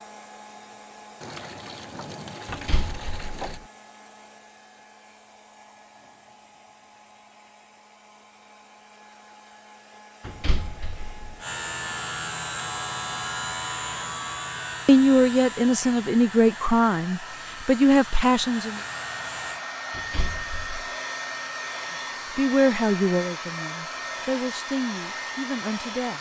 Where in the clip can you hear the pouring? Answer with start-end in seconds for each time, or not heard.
1.2-3.6.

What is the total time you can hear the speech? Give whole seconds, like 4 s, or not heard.
8 s.